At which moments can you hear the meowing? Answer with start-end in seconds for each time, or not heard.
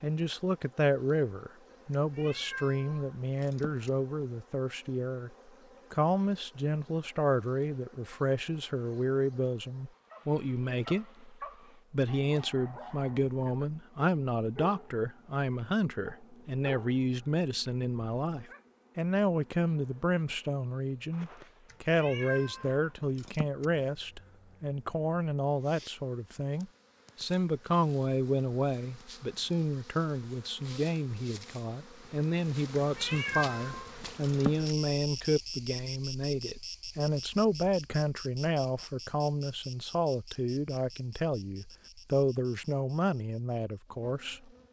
1.9-3.9, 21.6-23.6, 32.8-34.7.